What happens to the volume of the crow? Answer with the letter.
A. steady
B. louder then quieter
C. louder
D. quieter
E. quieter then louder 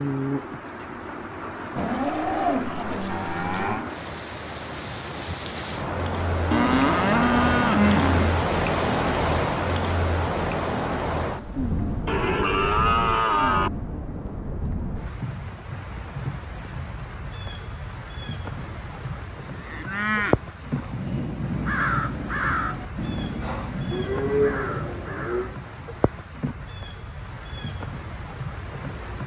D.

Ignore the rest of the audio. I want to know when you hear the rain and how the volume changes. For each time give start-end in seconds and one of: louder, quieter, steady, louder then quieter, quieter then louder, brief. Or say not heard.
0.0-29.2 louder then quieter.